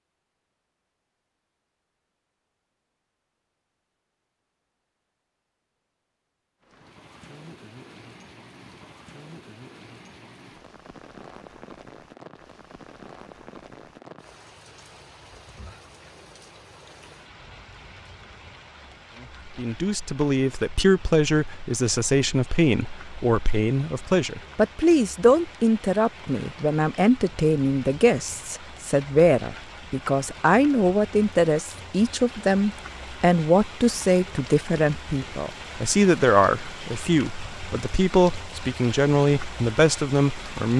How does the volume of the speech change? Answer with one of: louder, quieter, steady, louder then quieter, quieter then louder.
steady.